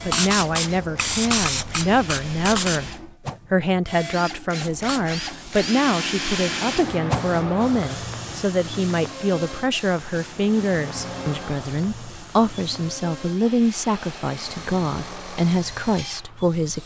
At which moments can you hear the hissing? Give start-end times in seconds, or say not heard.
0.0-3.0, 4.5-16.8.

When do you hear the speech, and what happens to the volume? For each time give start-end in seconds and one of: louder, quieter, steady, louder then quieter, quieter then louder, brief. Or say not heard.
0.0-16.8 steady.